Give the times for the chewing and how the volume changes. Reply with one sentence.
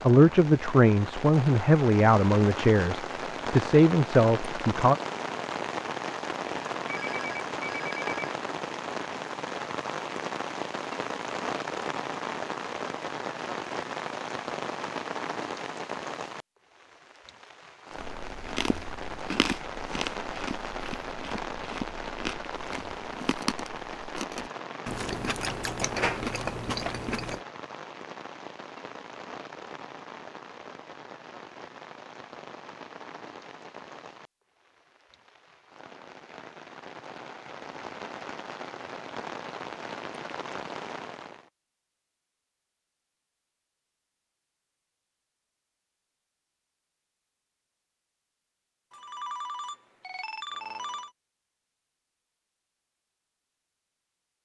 You can hear the chewing from 17.9 to 27.4 s, getting quieter then louder.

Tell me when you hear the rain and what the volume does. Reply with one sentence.
The rain can be heard from 0.0 to 41.5 s, getting quieter.